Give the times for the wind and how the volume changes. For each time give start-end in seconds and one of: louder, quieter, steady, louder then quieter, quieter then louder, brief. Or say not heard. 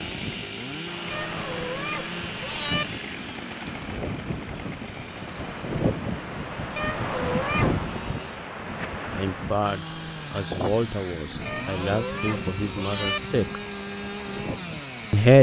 0.0-15.2 louder then quieter.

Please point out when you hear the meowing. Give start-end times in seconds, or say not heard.
1.1-2.9, 6.8-8.0, 11.4-13.2.